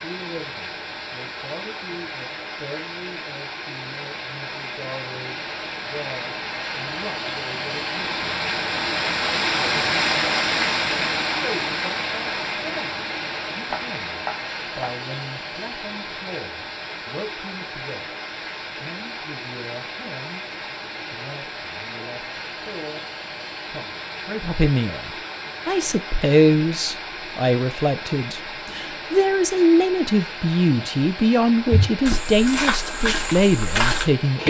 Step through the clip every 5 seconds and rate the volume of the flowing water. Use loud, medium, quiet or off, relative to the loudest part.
medium, loud, loud, medium, medium, medium, medium.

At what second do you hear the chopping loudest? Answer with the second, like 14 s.
14 s.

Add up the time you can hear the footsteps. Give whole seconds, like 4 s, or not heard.
3 s.